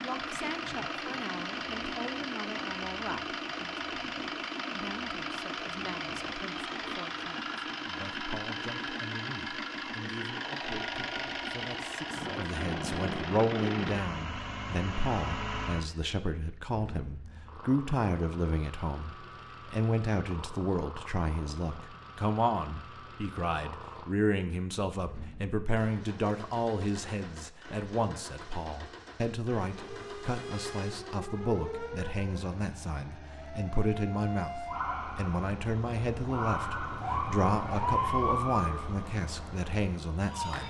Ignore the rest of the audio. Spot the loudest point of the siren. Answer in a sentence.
The loudest moment of the siren is at 38 seconds.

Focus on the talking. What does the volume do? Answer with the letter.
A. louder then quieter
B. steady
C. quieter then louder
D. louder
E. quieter
D.